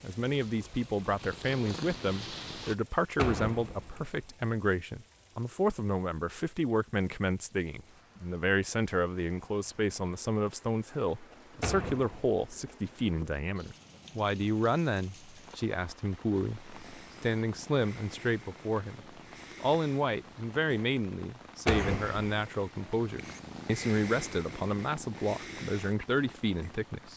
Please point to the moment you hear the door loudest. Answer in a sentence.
The loudest moment of the door is at 22 seconds.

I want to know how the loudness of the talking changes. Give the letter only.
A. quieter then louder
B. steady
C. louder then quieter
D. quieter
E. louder
B.